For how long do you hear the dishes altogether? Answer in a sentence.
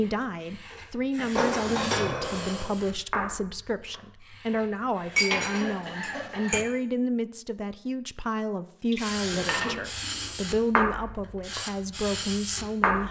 You can hear the dishes for 4 seconds altogether.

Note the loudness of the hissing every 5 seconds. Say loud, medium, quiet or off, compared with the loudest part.
medium, medium, loud.